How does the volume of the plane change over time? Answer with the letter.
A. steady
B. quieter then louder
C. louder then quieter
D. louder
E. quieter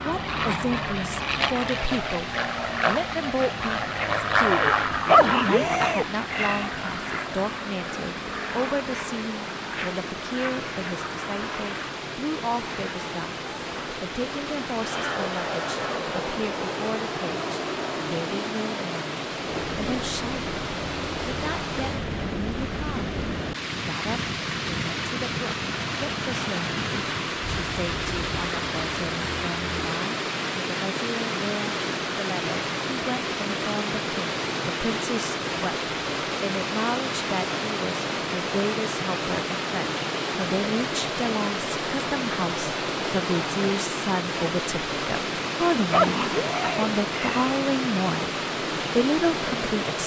E.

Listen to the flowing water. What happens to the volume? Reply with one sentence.
The volume of the flowing water goes up.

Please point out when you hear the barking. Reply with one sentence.
The barking can be heard from 5.0 to 6.7 s and from 45.9 to 47.5 s.